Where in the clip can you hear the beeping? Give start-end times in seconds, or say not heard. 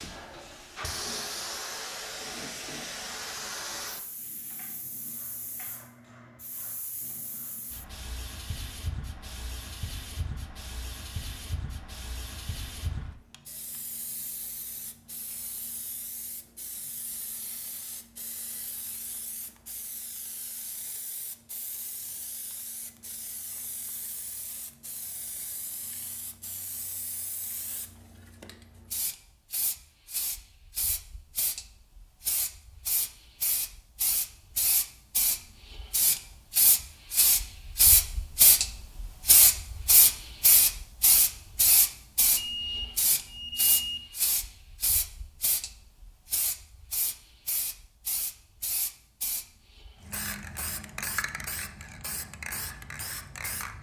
42.4-44.0.